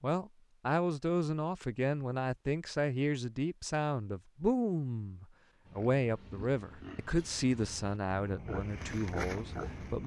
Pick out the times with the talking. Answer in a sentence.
The talking can be heard from 0.0 to 10.0 s.